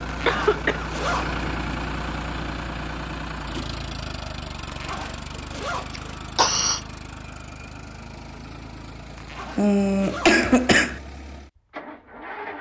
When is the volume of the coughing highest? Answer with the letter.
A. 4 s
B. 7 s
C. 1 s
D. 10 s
D.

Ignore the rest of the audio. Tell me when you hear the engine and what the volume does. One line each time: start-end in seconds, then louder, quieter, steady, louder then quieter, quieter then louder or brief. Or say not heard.
0.0-12.5 quieter.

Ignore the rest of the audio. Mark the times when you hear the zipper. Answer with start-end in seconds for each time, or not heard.
0.1-1.4, 4.7-6.2, 9.2-10.4.